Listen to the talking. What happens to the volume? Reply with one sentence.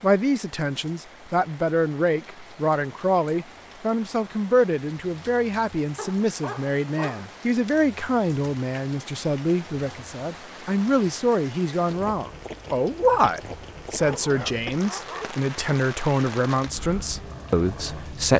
The loudness of the talking stays about the same.